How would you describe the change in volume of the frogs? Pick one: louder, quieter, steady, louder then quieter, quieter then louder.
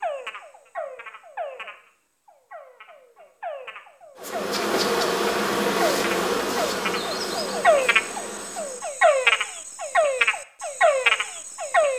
quieter then louder.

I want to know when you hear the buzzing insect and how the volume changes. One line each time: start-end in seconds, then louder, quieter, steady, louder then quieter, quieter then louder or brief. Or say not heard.
4.2-8.9 quieter.